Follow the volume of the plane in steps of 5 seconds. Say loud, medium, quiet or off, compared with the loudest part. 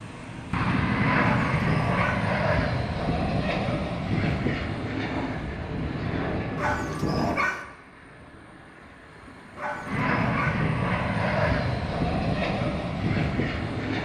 loud, medium, loud.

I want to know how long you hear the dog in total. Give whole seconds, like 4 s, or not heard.
3 s.